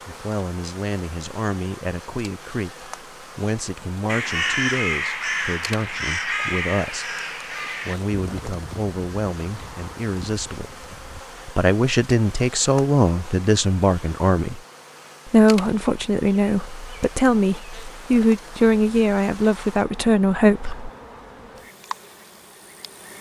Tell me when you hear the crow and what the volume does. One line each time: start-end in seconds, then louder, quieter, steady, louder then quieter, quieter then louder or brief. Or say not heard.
4.0-11.2 quieter.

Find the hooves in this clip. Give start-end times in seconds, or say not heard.
not heard.